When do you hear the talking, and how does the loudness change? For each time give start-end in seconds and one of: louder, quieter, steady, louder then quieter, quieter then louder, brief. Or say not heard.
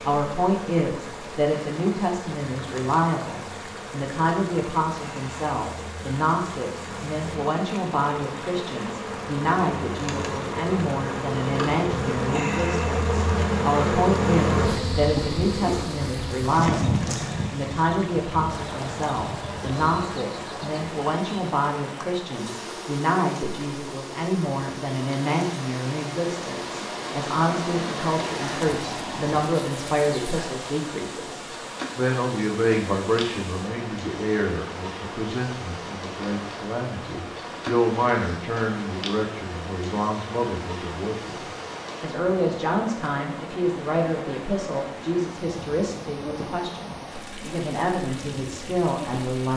0.0-49.5 steady.